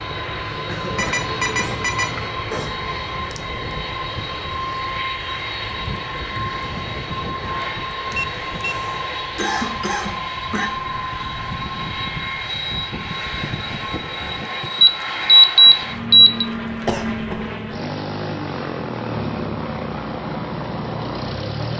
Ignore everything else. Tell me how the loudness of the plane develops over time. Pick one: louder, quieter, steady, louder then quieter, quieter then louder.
steady.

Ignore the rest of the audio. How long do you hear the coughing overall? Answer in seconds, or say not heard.
5 s.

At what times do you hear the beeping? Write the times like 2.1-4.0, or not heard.
0.9-2.4, 8.1-8.8, 14.8-16.4.